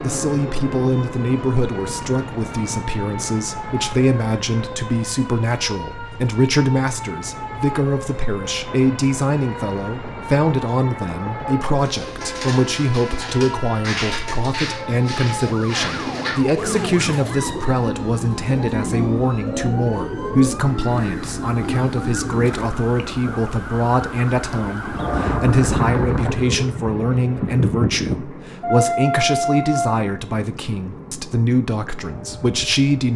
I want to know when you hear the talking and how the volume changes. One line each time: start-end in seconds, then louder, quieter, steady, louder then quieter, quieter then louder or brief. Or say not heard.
0.0-33.1 steady.